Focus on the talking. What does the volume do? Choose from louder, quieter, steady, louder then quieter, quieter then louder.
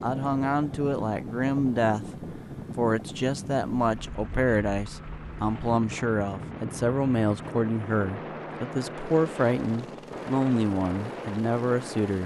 steady.